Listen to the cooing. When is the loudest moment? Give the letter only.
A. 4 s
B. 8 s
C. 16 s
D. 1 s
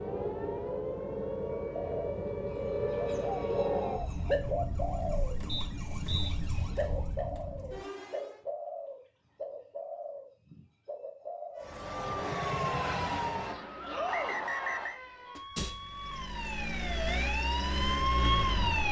A.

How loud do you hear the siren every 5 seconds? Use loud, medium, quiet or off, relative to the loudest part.
loud, medium, loud, loud.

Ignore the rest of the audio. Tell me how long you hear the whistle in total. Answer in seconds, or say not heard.
2 s.